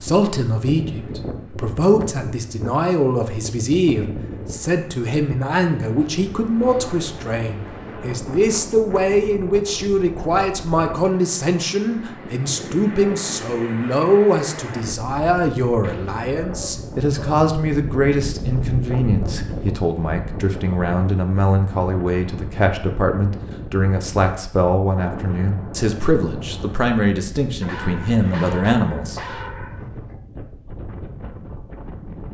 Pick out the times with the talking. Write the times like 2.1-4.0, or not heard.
0.0-29.2.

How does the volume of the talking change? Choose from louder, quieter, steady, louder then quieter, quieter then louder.
steady.